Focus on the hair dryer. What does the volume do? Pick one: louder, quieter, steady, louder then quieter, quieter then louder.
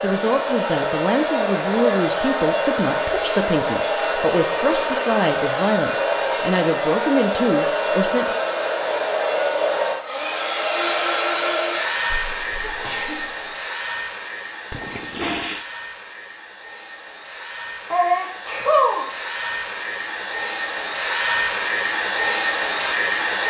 quieter then louder.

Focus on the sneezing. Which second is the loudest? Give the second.
19 s.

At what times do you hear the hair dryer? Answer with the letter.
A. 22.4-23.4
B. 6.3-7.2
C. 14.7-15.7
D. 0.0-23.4
D.